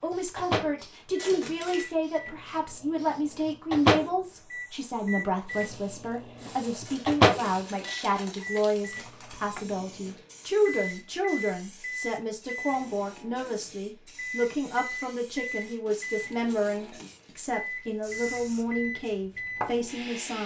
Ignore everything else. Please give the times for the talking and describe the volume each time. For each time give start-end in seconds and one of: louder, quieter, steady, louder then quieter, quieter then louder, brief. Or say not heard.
0.0-20.4 steady.